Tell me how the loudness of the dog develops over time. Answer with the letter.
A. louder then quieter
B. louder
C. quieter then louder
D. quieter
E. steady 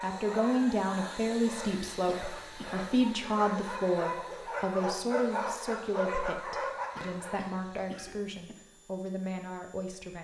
B.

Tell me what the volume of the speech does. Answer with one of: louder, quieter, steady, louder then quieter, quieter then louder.
quieter.